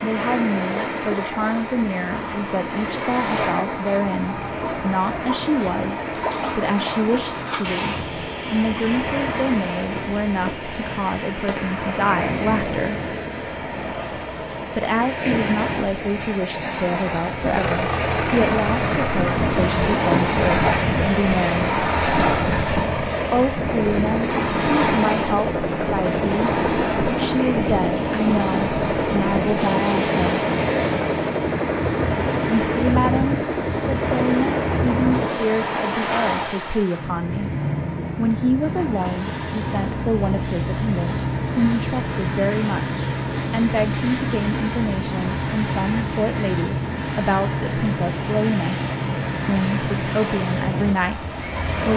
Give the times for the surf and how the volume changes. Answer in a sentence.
The surf can be heard from 0.0 to 51.9 s, at a steady volume.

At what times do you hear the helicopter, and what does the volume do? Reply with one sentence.
You can hear the helicopter from 17.4 to 35.5 s, at a steady volume.